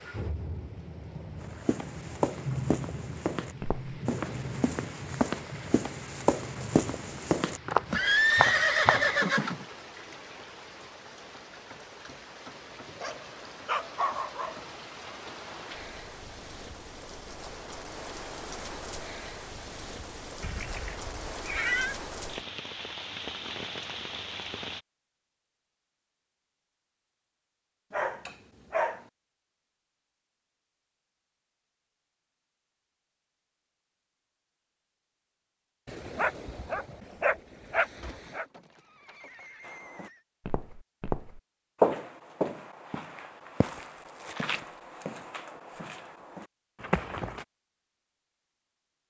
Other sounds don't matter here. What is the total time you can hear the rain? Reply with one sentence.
The rain can be heard for 25 seconds in total.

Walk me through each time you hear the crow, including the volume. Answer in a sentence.
You can't hear the crow here.